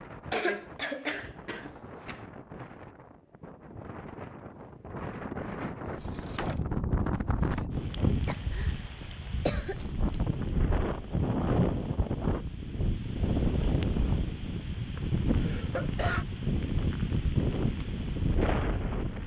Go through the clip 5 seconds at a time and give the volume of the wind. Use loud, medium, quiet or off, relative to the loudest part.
quiet, loud, loud, loud.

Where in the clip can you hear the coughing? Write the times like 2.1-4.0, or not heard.
0.3-2.2, 8.2-9.8, 14.9-16.2.